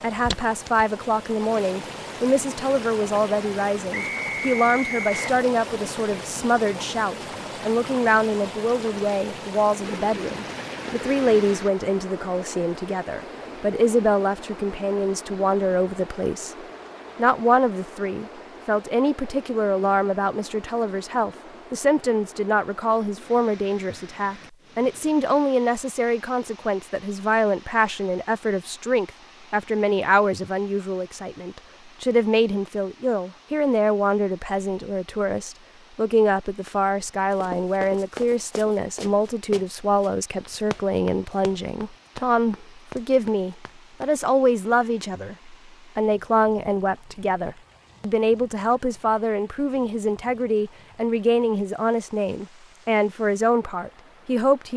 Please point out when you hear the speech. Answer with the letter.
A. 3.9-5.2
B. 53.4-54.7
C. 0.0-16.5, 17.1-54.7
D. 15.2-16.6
C.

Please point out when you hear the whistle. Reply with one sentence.
The whistle can be heard from 3.9 to 5.2 s.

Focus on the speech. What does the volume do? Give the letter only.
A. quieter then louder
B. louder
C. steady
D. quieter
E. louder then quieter
C.